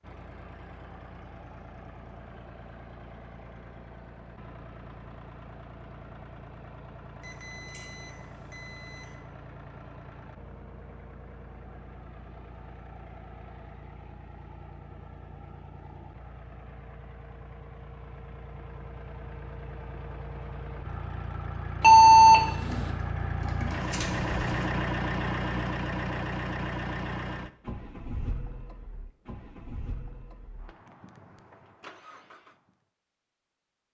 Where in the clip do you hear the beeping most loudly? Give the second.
22 s.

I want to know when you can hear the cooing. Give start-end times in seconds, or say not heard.
22.6-24.7.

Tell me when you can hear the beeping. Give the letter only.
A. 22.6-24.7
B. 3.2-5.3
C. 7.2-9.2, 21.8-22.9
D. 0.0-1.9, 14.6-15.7
C.